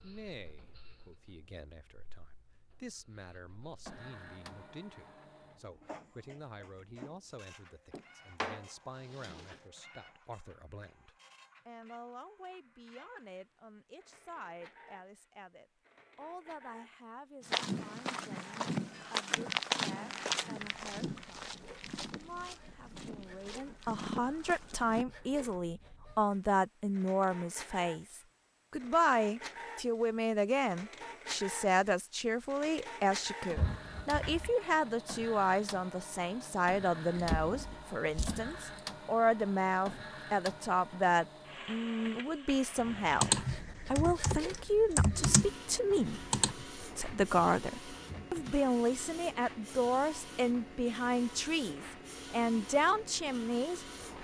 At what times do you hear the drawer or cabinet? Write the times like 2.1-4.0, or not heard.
7.9-9.6, 33.5-34.5, 37.1-38.6.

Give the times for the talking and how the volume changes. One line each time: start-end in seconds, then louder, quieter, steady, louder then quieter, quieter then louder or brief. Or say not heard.
0.0-53.9 louder.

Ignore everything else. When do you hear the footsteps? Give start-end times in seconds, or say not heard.
17.4-25.1.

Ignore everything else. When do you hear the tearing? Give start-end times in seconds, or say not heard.
not heard.